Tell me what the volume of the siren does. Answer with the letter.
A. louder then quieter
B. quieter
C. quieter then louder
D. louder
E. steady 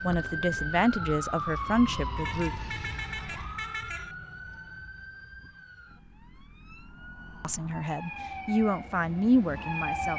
C.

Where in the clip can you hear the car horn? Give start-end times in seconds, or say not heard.
2.1-4.2.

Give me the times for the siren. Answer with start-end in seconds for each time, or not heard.
0.0-10.1.